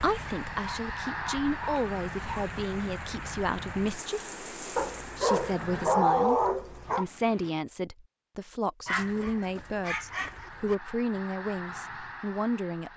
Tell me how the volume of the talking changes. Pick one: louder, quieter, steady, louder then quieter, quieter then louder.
steady.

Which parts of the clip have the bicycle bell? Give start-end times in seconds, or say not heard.
not heard.